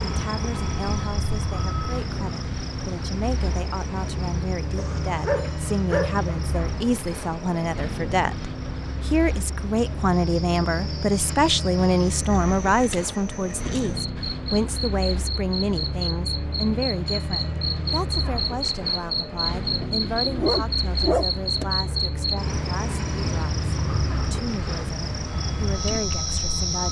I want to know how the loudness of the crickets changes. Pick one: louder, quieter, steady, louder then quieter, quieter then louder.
quieter then louder.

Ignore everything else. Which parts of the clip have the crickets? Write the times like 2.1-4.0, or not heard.
0.0-26.8.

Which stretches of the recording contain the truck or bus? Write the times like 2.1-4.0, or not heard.
0.0-26.8.